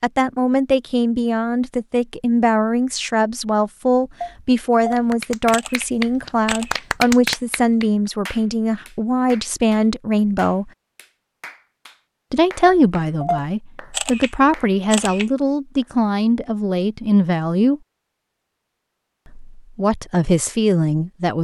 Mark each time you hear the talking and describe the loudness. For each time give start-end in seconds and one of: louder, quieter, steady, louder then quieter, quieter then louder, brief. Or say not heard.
0.0-10.7 steady
12.3-17.8 steady
19.3-21.3 brief.